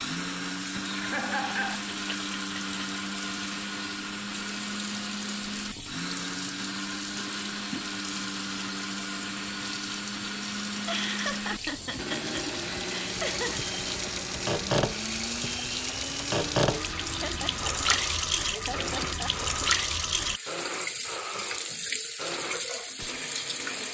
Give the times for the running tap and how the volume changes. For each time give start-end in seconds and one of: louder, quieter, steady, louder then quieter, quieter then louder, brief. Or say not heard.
0.0-23.8 louder.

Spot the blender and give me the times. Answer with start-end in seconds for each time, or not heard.
0.0-23.8.